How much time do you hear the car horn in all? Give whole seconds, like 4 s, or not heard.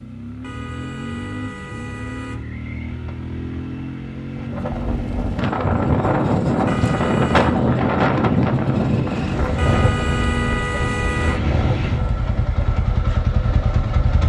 5 s.